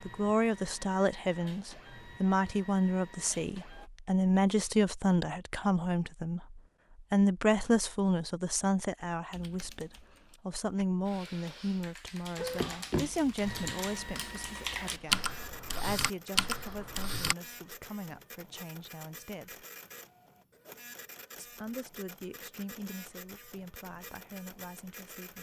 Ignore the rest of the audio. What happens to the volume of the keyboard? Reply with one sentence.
The volume of the keyboard goes up.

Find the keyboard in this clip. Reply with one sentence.
The keyboard can be heard from 9.3 to 17.4 s.